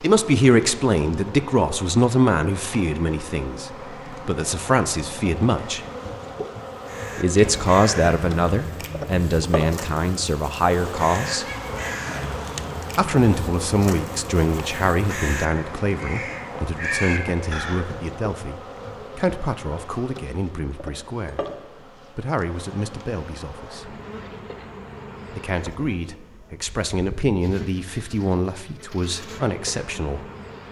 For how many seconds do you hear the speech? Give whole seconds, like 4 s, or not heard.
25 s.